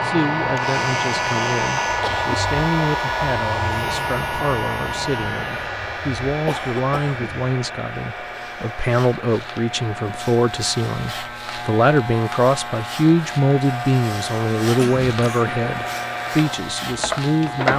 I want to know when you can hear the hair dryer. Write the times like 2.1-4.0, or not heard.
0.0-17.7.